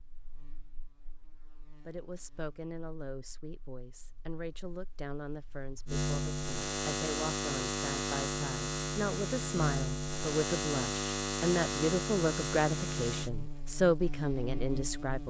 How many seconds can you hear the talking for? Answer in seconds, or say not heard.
13 s.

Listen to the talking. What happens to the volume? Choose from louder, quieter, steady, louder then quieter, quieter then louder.
louder.